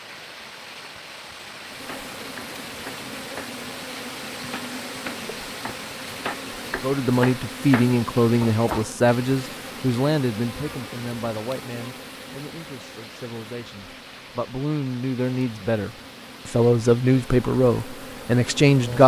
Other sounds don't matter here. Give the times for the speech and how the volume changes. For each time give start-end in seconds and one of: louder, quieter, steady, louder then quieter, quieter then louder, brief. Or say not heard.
6.8-19.0 quieter then louder.